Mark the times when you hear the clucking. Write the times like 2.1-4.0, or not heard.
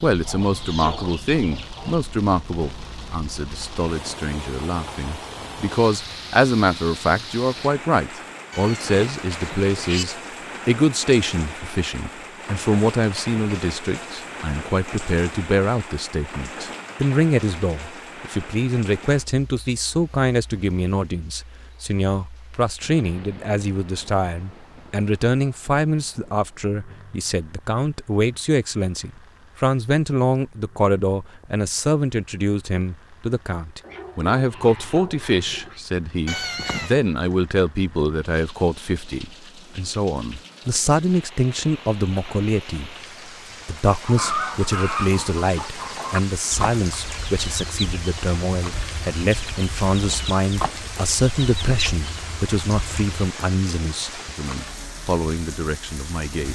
0.0-2.0, 44.0-53.2.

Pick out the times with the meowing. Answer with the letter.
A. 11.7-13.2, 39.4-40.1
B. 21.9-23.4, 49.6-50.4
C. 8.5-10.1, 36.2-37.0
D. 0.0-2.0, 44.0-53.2
C.